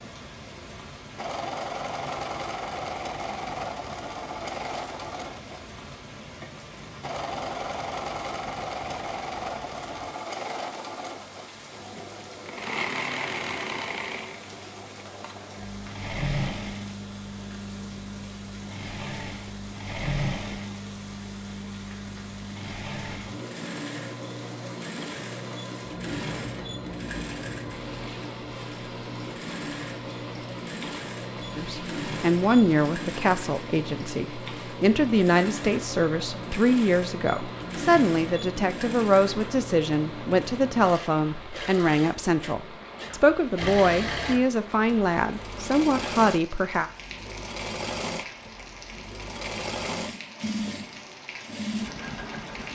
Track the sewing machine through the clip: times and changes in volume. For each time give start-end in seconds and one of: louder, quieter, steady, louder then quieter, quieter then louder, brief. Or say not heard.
0.0-52.6 steady.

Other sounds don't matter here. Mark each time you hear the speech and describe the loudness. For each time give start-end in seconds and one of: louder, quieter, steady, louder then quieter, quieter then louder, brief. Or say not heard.
31.6-46.9 steady.